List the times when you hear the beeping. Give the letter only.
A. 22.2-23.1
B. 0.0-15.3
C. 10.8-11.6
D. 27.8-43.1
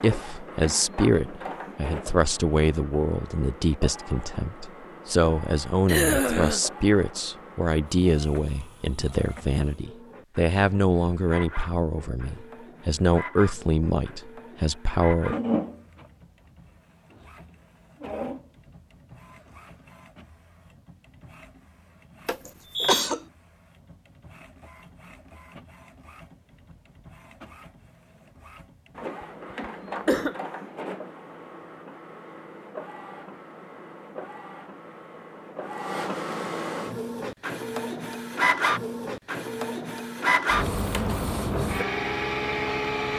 A.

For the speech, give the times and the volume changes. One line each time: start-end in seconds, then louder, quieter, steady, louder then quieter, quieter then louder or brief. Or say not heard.
0.0-15.3 steady.